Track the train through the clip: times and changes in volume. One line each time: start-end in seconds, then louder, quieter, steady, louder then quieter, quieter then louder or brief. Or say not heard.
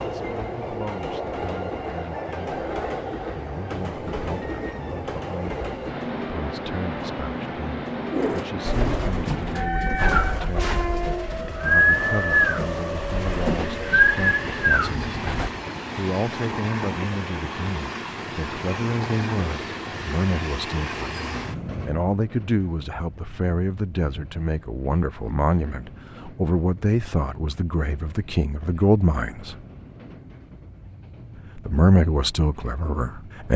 0.0-33.5 quieter.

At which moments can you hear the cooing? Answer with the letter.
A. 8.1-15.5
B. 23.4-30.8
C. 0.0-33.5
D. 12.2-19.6
A.